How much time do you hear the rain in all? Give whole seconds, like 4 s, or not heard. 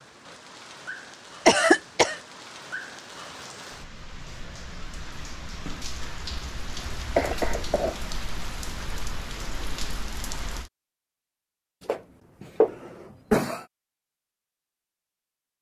11 s.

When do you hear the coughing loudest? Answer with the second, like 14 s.
2 s.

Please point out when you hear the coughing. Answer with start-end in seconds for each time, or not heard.
1.4-2.2, 7.2-8.0, 11.8-13.7.